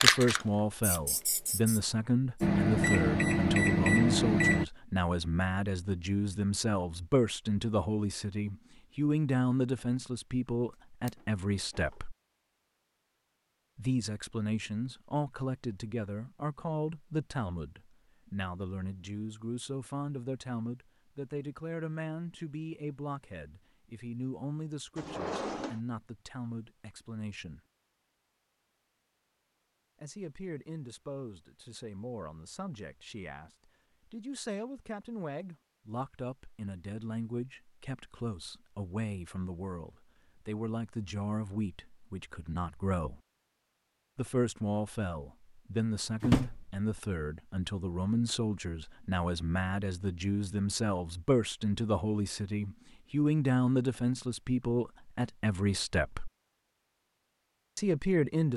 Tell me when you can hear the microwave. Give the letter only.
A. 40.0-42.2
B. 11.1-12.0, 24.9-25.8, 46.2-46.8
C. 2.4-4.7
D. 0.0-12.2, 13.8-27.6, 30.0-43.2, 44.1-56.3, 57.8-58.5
C.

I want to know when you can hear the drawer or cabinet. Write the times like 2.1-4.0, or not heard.
11.1-12.0, 24.9-25.8, 46.2-46.8.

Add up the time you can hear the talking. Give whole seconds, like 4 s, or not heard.
52 s.